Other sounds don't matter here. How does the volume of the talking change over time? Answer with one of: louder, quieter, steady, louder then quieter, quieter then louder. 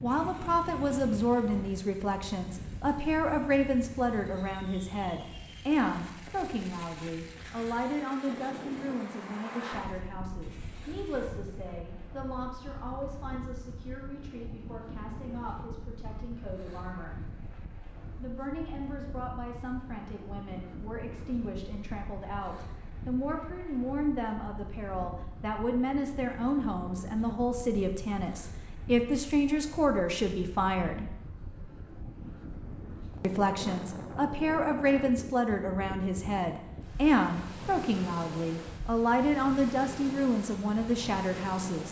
quieter then louder.